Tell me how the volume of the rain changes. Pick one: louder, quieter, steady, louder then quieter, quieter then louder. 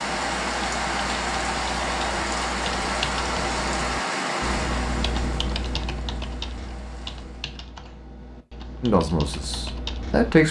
quieter.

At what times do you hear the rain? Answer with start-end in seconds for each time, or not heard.
0.0-7.6.